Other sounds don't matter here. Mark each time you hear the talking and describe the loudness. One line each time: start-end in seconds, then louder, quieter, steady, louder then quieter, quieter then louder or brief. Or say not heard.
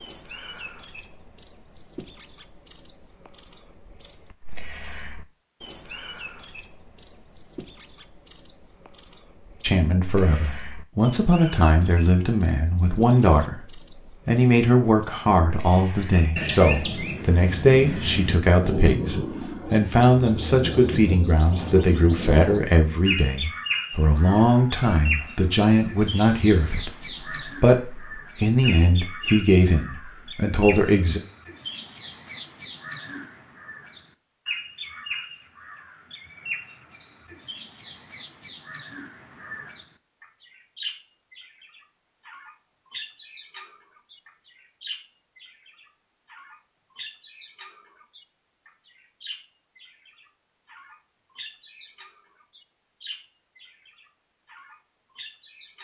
9.6-31.2 steady.